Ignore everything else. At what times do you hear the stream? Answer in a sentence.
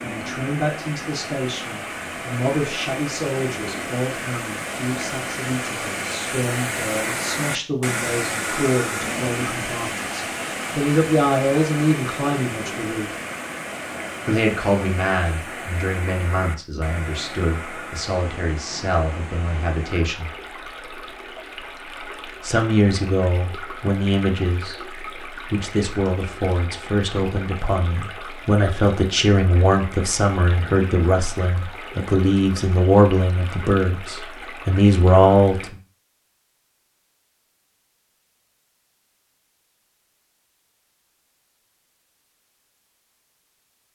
The stream can be heard from 0.0 to 35.7 s.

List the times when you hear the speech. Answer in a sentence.
You can hear the speech from 0.0 to 13.1 s, from 14.2 to 20.3 s, from 22.4 to 24.8 s and from 25.5 to 35.8 s.